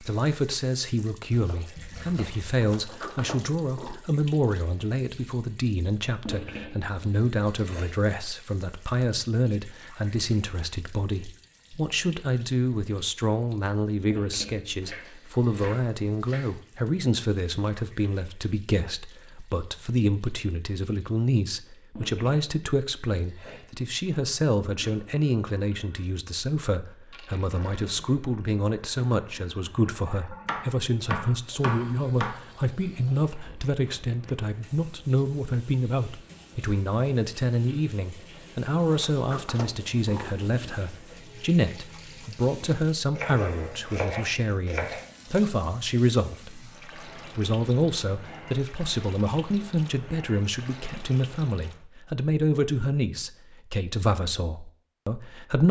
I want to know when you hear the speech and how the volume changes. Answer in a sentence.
You can hear the speech from 0.0 to 55.6 s, at a steady volume.